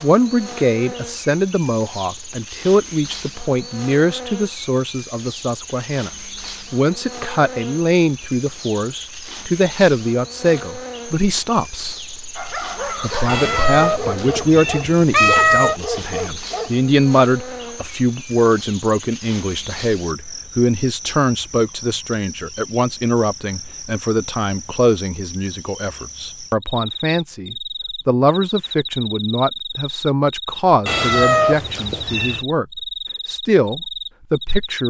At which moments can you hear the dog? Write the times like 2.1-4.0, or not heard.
12.3-16.8.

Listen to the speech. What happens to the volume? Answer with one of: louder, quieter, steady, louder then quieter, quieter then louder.
steady.